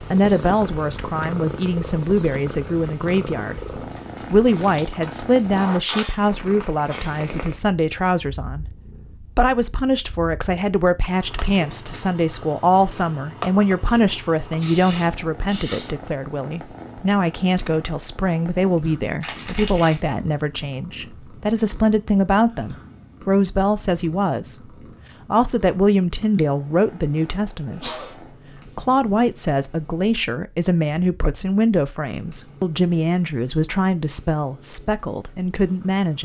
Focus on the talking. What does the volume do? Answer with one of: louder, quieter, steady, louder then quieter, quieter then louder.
steady.